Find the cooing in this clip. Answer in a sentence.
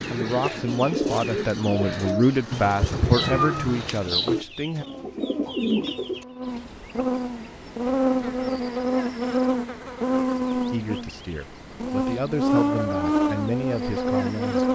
You can hear the cooing from 0.0 to 6.2 s.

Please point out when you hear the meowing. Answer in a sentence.
You can hear the meowing from 2.5 to 4.5 s.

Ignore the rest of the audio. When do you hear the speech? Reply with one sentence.
You can hear the speech from 0.1 to 4.8 s and from 10.5 to 14.6 s.